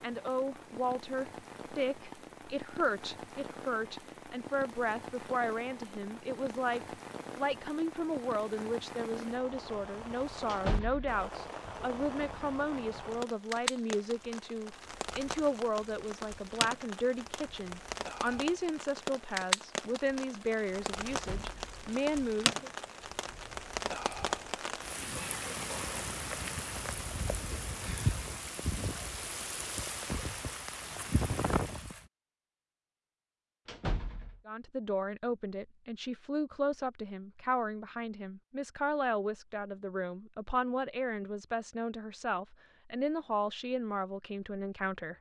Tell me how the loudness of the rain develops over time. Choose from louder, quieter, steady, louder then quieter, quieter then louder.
louder.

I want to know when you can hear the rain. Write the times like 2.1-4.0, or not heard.
0.0-32.0.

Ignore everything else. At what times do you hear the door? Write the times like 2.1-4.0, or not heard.
10.4-11.2, 21.1-21.8, 33.6-34.4.